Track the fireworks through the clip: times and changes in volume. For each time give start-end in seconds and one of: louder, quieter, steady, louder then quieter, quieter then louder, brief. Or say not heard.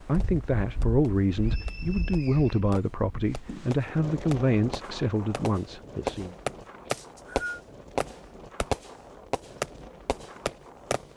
0.1-11.0 louder.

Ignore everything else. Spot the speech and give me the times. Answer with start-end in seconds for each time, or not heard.
0.0-6.3.